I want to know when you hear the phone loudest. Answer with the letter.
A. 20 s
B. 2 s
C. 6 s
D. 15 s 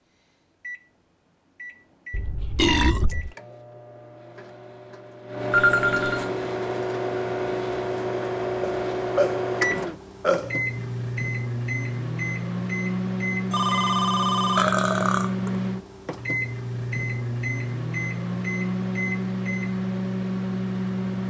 C.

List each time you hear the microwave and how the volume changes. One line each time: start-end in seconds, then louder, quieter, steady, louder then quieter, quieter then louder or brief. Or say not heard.
0.1-21.2 louder.